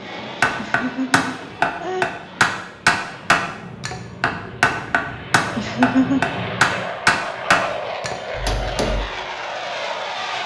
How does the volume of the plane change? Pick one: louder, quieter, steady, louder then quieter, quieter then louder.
louder.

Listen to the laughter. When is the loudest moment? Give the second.
6 s.